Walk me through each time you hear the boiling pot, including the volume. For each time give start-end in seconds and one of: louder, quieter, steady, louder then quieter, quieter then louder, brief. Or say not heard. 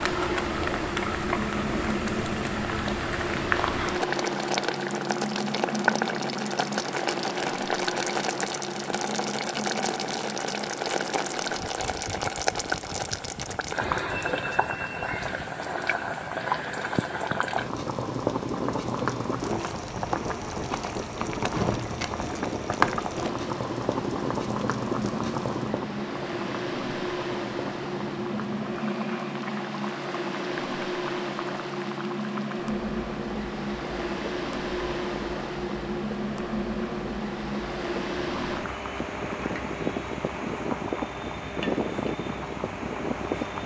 0.0-43.6 quieter.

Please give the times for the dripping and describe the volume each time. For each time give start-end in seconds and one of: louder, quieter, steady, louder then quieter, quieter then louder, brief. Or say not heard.
not heard.